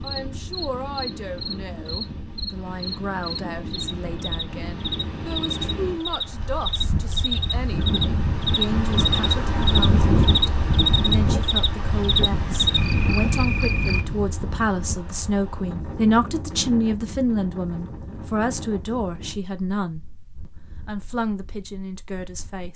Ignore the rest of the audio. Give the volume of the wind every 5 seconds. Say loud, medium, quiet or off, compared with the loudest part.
medium, loud, loud, medium, quiet.